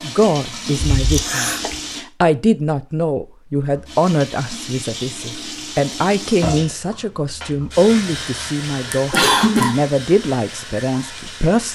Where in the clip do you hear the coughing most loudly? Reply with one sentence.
The volume of the coughing peaks at 9 seconds.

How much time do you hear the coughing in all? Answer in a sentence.
The coughing can be heard for 2 seconds in total.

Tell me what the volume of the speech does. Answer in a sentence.
The volume of the speech stays about the same.